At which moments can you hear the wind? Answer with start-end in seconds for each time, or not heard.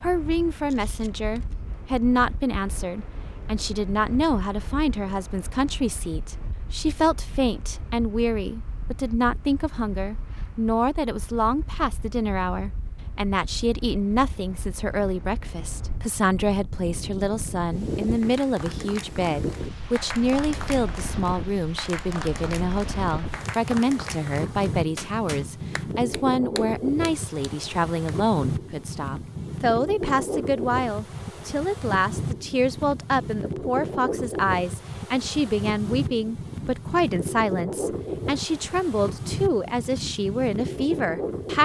0.0-41.6.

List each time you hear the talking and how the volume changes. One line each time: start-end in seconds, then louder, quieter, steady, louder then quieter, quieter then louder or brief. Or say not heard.
0.0-41.6 steady.